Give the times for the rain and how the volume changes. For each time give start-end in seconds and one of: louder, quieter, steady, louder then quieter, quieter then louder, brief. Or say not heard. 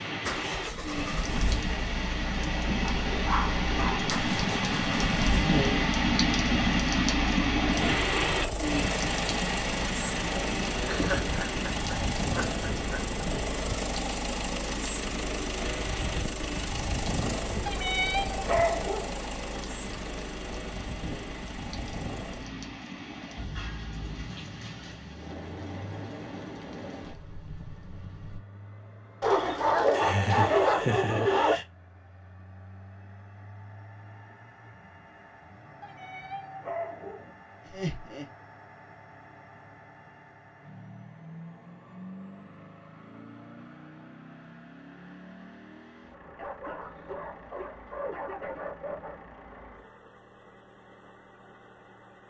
0.0-28.4 quieter.